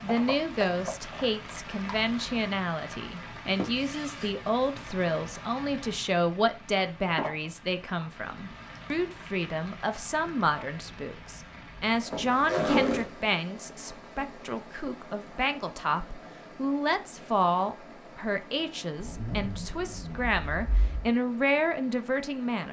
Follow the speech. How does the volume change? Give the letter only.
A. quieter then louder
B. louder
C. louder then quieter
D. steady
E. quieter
D.